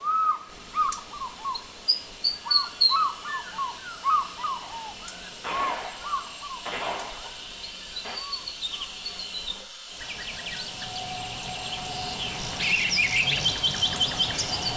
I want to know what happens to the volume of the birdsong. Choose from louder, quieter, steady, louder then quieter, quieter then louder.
quieter then louder.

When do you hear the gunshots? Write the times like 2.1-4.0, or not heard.
4.5-8.2.